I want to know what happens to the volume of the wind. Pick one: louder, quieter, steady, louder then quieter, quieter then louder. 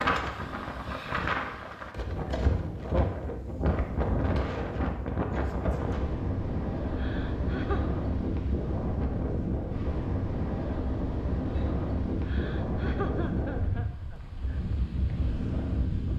steady.